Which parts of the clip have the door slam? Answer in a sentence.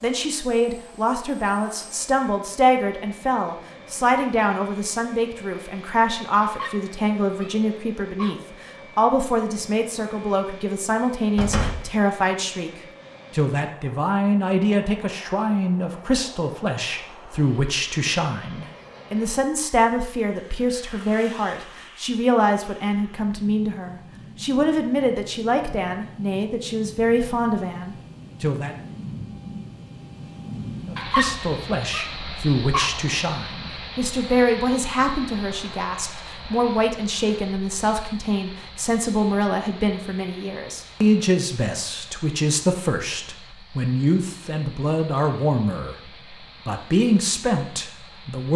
You can hear the door slam from 11.3 to 11.9 s.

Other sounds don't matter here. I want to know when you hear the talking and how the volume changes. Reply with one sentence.
You can hear the talking from 0.0 to 12.7 s, at a steady volume; from 13.3 to 28.8 s, at a steady volume; from 30.9 to 46.0 s, at a steady volume; and briefly from 46.6 to 48.5 s.